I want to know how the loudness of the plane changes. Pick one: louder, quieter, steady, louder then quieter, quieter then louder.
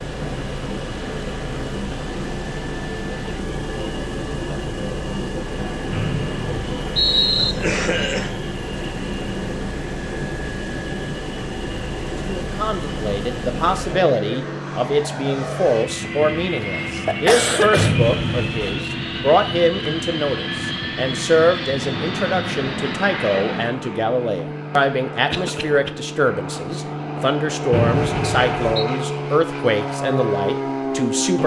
steady.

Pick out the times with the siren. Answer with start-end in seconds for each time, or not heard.
not heard.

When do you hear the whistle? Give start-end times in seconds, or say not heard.
5.9-7.5, 17.8-18.8, 27.7-28.9.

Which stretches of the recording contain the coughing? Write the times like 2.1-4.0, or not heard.
7.3-8.3, 16.6-17.9, 25.3-25.9.